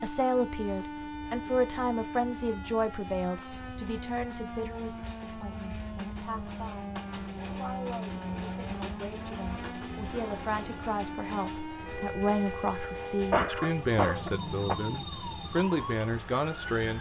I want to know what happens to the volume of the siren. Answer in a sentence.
The volume of the siren stays about the same.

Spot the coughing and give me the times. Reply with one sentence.
You can hear the coughing from 12.8 to 14.8 s.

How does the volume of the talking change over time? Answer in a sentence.
The loudness of the talking goes down, then up.